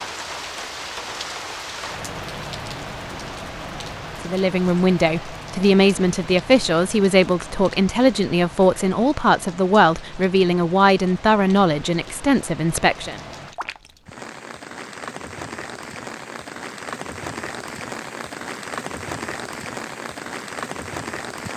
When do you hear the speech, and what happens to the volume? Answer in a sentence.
You can hear the speech from 4.2 to 13.2 s, at a steady volume.